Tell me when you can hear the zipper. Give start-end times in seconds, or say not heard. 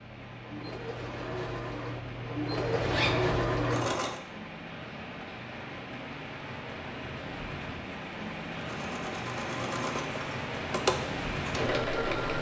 2.6-3.4.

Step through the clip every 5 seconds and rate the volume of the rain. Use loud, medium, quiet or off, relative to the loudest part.
medium, loud, loud.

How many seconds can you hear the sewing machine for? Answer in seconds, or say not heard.
8 s.